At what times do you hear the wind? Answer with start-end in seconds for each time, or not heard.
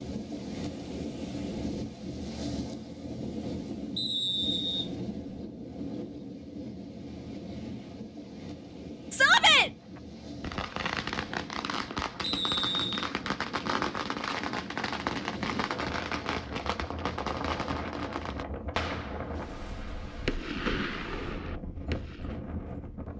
0.0-23.1.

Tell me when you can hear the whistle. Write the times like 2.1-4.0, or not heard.
4.0-5.3, 12.2-13.1.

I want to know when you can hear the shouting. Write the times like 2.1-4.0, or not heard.
9.1-9.7.